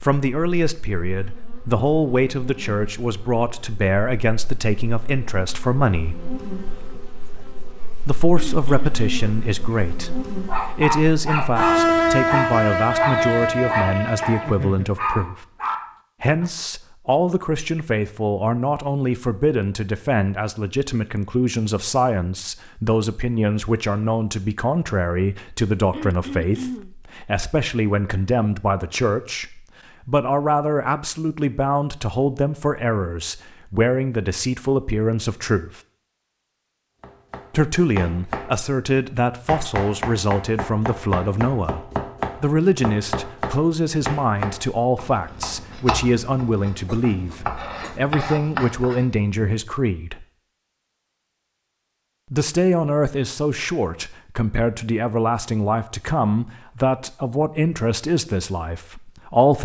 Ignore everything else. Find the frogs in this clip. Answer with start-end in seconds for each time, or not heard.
not heard.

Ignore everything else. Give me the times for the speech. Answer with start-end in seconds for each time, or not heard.
0.0-6.2, 8.1-15.4, 16.2-35.8, 37.5-41.8, 42.4-50.2, 52.3-59.6.